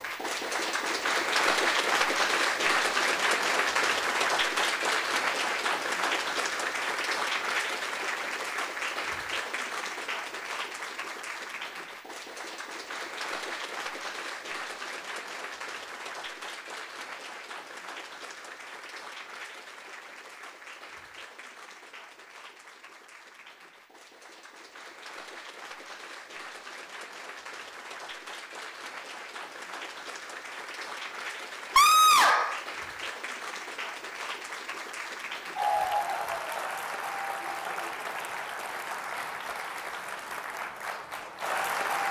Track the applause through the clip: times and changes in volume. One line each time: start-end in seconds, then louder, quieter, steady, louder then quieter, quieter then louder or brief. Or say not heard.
0.0-42.0 quieter then louder.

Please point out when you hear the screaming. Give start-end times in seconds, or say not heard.
31.8-32.6.